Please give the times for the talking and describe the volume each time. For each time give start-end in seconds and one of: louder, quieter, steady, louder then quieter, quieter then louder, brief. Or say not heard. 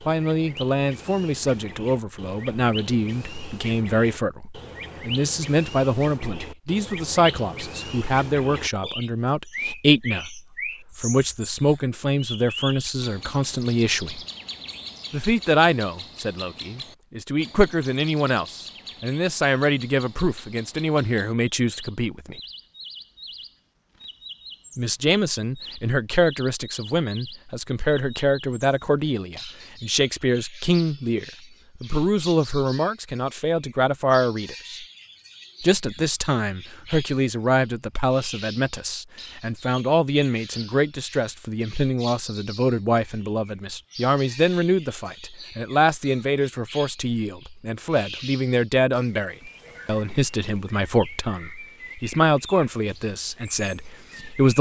0.1-14.2 steady
15.1-22.4 steady
24.8-34.9 steady
35.6-54.5 steady.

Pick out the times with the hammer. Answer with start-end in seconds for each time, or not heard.
not heard.